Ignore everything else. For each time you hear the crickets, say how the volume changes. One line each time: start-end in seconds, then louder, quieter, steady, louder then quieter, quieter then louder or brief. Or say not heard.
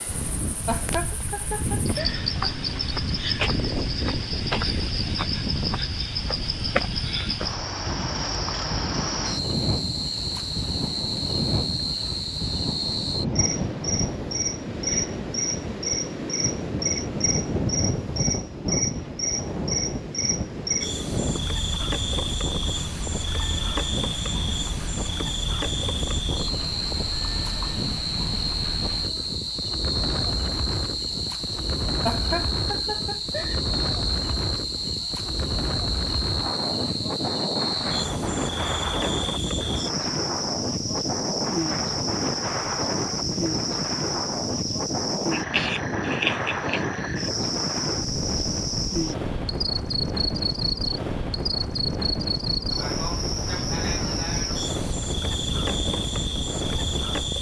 0.0-57.3 steady.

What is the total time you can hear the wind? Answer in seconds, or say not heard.
57 s.